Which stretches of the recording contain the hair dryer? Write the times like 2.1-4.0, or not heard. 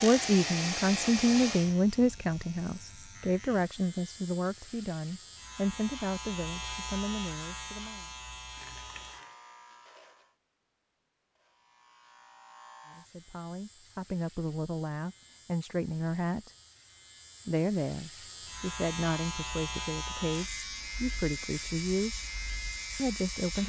0.0-1.8.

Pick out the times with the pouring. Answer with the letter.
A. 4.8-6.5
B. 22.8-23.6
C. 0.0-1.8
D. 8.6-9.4
D.